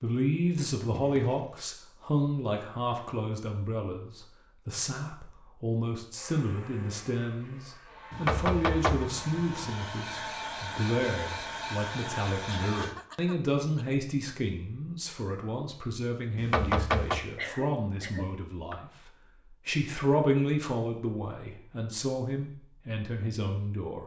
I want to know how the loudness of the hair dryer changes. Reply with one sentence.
The loudness of the hair dryer goes up.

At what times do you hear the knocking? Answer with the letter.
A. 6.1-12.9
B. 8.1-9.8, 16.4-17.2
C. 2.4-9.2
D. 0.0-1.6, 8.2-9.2
B.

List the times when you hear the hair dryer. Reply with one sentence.
You can hear the hair dryer from 6.1 to 12.9 s.